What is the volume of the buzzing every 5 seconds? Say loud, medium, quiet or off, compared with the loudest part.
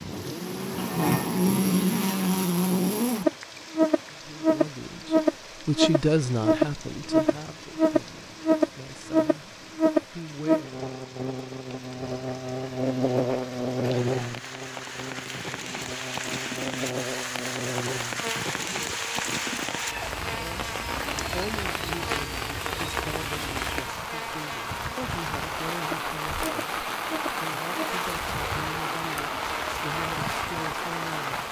loud, loud, medium, quiet, quiet, quiet, quiet.